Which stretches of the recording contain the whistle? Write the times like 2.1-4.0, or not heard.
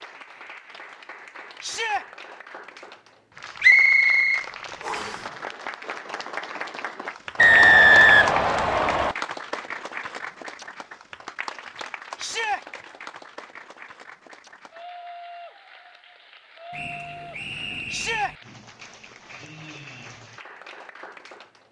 3.6-5.2, 7.3-9.2, 16.7-18.4.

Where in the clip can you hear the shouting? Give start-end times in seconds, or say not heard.
1.6-2.0, 12.2-12.6, 17.9-18.4.